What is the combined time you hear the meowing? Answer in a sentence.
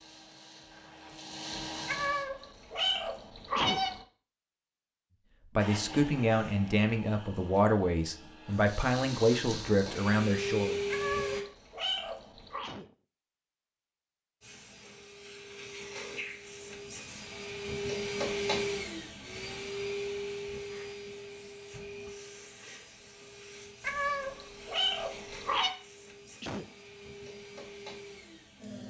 The meowing can be heard for 6 seconds in total.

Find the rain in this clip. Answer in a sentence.
The rain can't be heard in this clip.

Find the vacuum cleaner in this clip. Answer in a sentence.
You can hear the vacuum cleaner from 0.0 to 2.2 s, from 5.5 to 11.4 s and from 14.4 to 28.8 s.